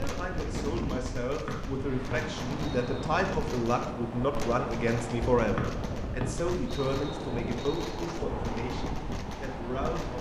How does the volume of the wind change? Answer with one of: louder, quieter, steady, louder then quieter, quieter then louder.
steady.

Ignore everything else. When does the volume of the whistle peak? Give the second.
6 s.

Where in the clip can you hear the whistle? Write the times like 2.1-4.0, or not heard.
1.4-3.0, 5.5-8.0.